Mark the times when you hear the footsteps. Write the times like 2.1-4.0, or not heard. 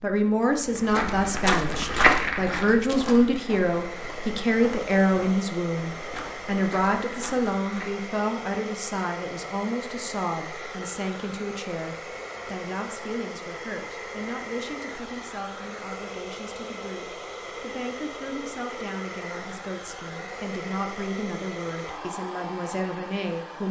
0.6-8.1.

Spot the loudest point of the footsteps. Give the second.
2 s.